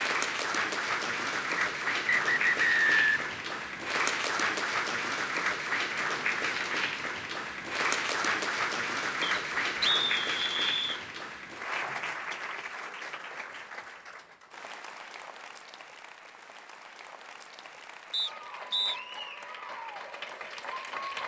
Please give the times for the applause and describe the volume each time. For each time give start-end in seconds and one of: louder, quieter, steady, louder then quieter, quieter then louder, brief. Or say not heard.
0.0-21.2 quieter.